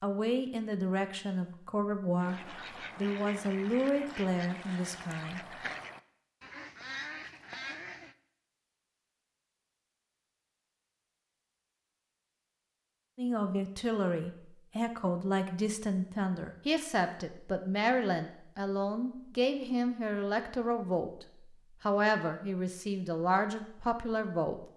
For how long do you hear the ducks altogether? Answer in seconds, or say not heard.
6 s.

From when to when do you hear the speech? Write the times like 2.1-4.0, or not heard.
0.0-5.6, 13.2-24.6.